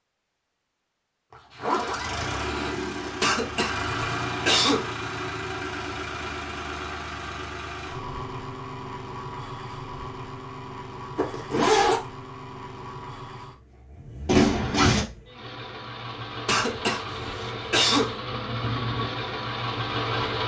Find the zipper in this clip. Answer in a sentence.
The zipper can be heard from 1.3 to 3.1 s, from 11.2 to 12.0 s and from 14.2 to 15.1 s.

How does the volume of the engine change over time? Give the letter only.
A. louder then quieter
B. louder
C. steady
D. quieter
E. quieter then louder
E.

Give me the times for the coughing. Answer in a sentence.
You can hear the coughing from 3.2 to 4.9 s and from 16.4 to 18.2 s.